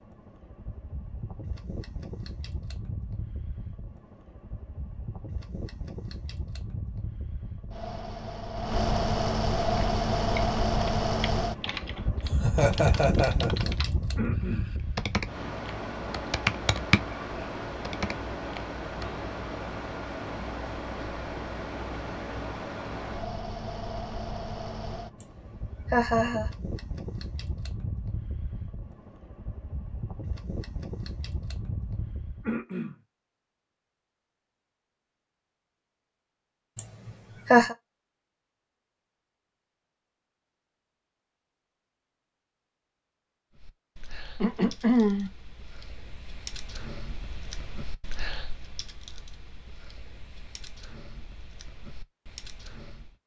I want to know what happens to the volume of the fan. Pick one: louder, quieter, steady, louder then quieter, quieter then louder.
louder then quieter.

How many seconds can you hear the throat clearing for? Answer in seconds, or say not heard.
2 s.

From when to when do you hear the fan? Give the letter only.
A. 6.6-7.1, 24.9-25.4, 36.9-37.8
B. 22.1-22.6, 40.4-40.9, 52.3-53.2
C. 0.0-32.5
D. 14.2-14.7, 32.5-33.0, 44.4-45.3
C.